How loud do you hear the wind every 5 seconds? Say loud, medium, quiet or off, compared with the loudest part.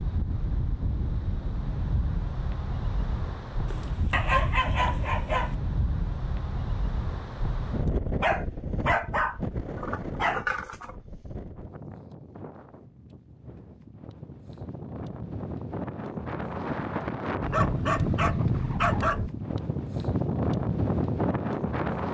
medium, medium, quiet, loud, loud.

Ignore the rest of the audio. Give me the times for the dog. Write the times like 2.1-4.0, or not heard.
3.7-5.5, 8.2-10.9, 17.4-19.3.